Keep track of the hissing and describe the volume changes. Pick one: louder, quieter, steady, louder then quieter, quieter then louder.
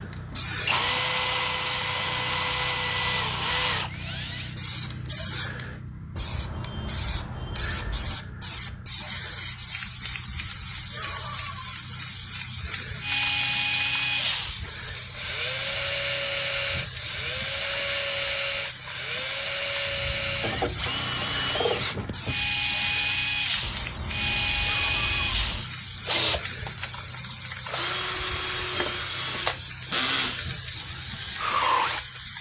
steady.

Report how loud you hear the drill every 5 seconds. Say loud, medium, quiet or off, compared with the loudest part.
loud, off, loud, loud, loud, loud, loud.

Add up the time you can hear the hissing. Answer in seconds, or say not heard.
32 s.